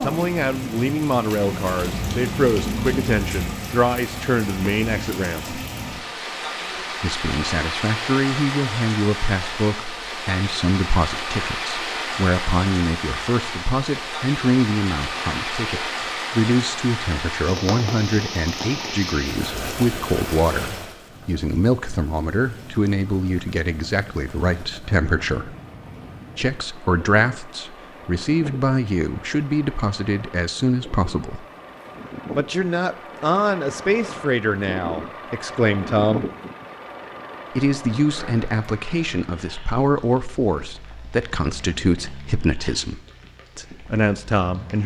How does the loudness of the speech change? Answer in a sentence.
The volume of the speech stays about the same.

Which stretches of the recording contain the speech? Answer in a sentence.
The speech can be heard from 0.0 to 5.6 s, from 7.0 to 25.6 s, from 26.4 to 31.4 s, from 32.4 to 36.2 s and from 37.5 to 44.8 s.